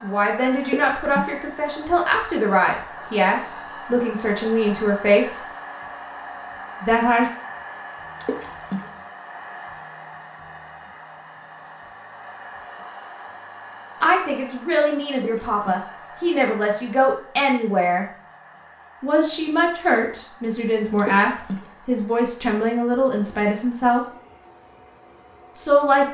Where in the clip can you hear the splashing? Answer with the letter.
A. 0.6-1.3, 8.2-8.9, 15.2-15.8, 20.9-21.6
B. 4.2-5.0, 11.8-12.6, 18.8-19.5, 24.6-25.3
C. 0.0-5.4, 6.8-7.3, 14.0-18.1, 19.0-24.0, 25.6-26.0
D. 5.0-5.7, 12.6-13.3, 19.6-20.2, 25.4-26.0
A.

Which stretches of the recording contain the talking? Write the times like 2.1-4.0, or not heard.
0.0-5.4, 6.8-7.3, 14.0-18.1, 19.0-24.0, 25.6-26.0.